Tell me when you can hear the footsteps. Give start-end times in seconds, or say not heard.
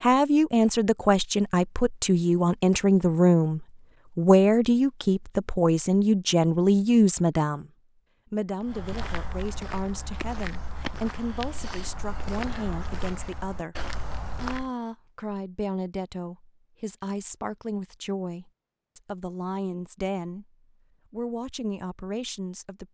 8.6-14.7.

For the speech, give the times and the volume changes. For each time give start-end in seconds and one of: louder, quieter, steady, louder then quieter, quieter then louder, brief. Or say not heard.
0.0-20.4 quieter
21.1-22.8 brief.